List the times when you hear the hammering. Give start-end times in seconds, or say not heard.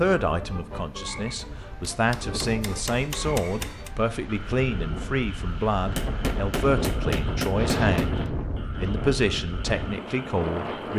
1.4-3.9, 6.0-8.2.